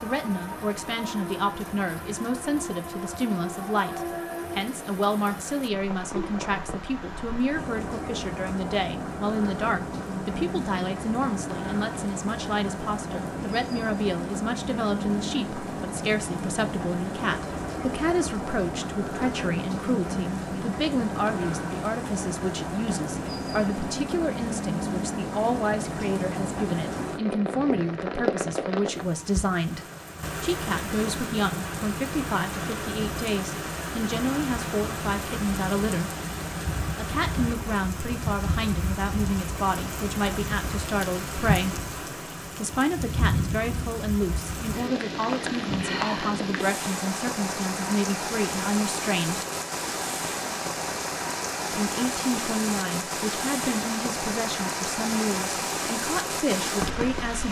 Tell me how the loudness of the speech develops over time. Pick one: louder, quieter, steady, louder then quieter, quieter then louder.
steady.